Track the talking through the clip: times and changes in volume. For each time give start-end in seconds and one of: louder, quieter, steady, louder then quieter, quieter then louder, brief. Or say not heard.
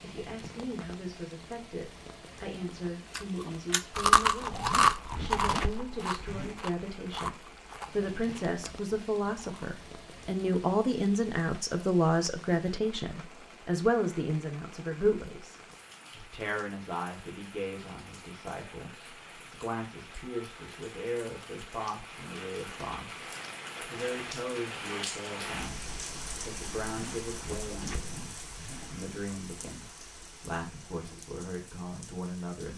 0.0-32.7 louder then quieter.